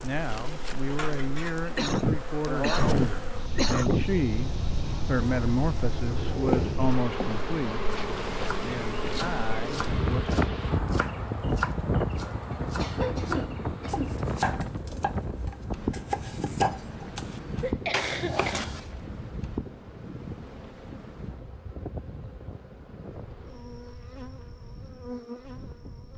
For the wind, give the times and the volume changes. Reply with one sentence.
The wind can be heard from 0.0 to 26.1 s, getting louder then quieter.